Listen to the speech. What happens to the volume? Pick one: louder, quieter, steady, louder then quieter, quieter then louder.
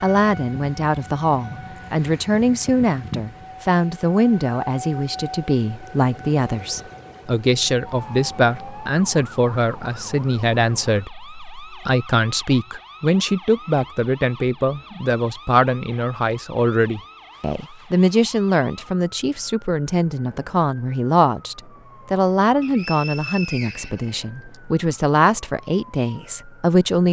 steady.